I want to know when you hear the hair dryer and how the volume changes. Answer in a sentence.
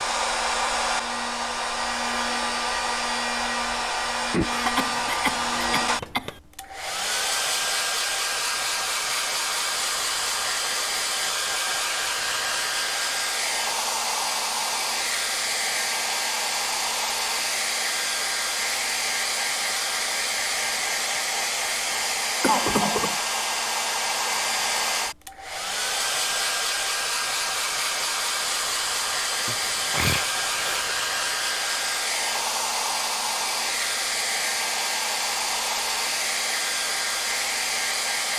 The hair dryer can be heard from 0.0 to 38.3 s, at a steady volume.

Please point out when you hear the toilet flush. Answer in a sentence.
The toilet flush can't be heard in this clip.